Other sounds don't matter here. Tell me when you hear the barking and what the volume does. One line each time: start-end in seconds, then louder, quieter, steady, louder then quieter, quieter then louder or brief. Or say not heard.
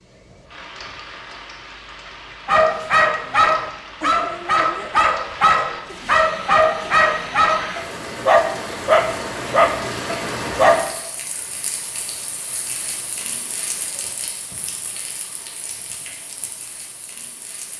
2.5-10.8 steady.